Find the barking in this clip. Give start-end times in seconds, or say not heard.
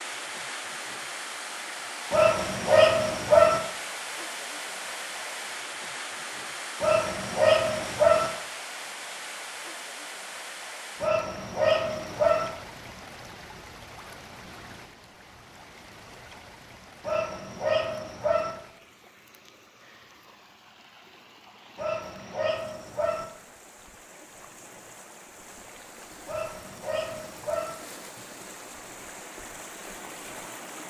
2.1-3.6, 6.8-8.3, 11.0-12.5, 17.0-18.6, 21.8-23.2, 26.2-27.8.